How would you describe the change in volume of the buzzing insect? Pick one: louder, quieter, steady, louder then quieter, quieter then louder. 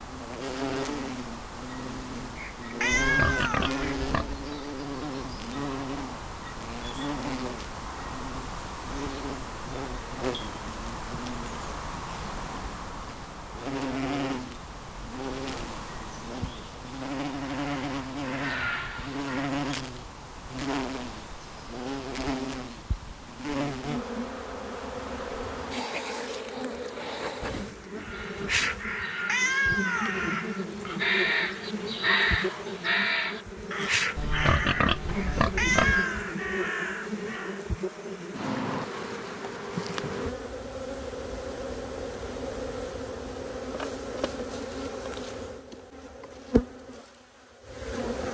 steady.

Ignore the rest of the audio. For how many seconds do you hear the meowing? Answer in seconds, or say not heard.
4 s.